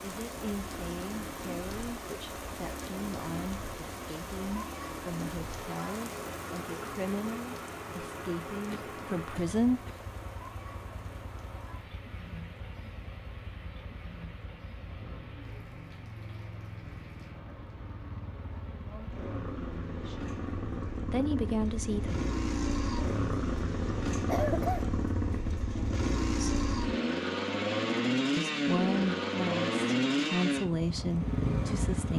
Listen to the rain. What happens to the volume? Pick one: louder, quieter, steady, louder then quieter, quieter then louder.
quieter.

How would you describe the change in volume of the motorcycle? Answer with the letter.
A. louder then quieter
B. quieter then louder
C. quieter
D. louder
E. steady
D.